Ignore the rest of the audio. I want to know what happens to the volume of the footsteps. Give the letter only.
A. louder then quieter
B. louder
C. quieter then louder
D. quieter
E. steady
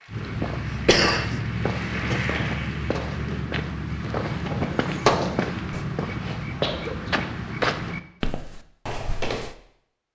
E.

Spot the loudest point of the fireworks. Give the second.
5 s.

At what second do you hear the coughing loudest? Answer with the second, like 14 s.
1 s.